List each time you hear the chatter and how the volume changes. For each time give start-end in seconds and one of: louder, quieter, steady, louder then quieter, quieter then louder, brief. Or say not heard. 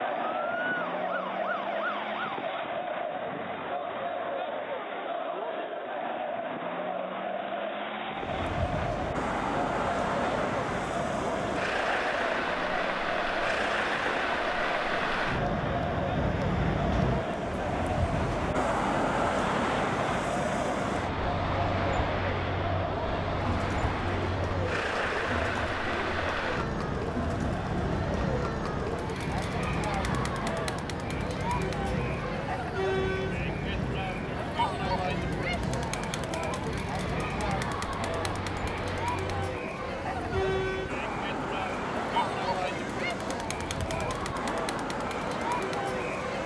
0.0-46.4 steady.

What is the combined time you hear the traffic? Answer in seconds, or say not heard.
38 s.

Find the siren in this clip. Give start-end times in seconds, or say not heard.
0.1-2.5.